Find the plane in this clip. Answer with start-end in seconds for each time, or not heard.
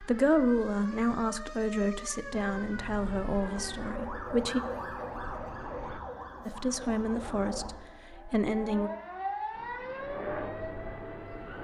2.3-6.0, 9.5-11.5.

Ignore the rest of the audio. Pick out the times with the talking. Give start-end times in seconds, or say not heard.
0.0-4.6, 6.5-8.9.